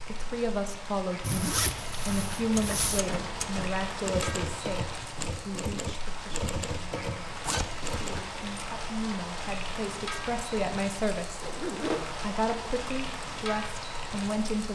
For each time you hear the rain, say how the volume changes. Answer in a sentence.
The rain can be heard from 0.0 to 14.7 s, at a steady volume.